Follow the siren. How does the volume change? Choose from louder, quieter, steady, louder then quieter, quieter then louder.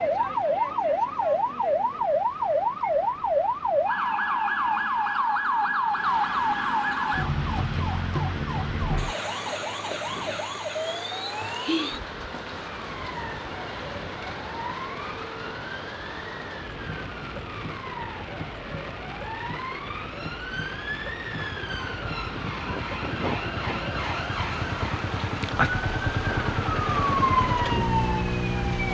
quieter then louder.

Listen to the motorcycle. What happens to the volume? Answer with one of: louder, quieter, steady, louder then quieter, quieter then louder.
louder.